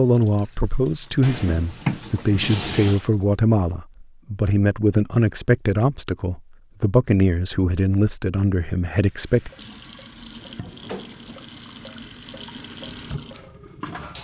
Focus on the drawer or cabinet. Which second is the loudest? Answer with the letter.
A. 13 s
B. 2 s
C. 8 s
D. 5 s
B.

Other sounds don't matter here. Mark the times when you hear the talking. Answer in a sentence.
The talking can be heard from 0.0 to 9.5 s.